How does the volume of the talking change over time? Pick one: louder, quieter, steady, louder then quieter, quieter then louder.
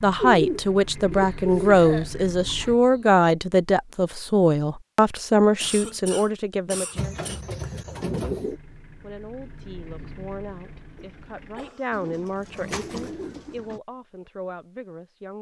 quieter.